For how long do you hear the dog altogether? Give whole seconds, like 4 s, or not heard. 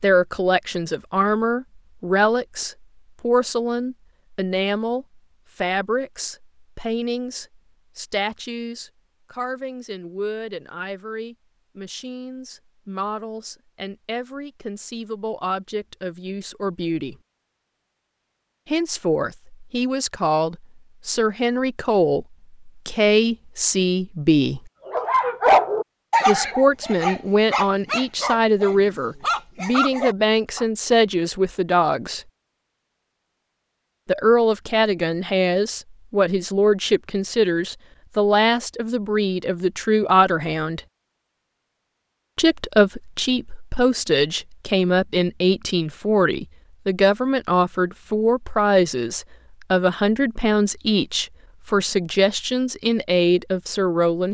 6 s.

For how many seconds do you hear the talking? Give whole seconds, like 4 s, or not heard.
48 s.